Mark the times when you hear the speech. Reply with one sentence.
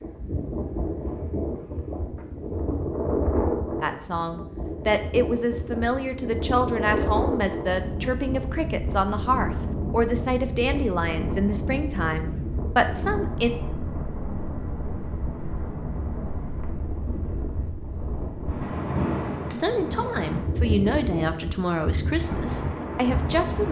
The speech can be heard from 3.8 to 13.5 s and from 19.5 to 23.6 s.